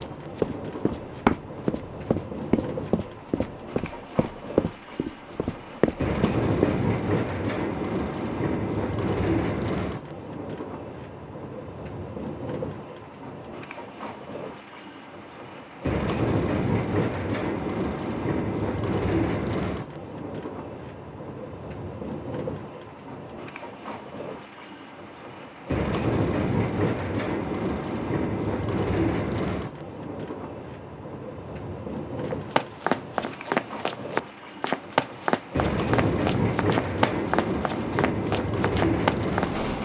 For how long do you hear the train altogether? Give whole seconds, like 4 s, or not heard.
40 s.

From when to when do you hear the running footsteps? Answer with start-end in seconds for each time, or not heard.
0.0-6.8, 32.2-39.5.